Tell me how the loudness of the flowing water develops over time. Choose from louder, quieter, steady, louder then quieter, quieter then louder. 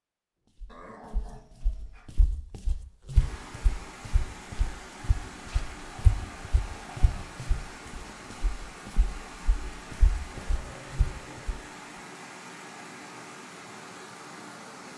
steady.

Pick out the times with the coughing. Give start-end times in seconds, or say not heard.
not heard.